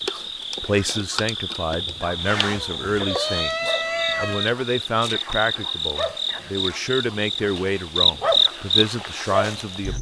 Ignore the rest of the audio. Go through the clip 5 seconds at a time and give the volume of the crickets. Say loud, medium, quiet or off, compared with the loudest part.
medium, loud.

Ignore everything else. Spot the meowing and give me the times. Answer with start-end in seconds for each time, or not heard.
2.2-4.5.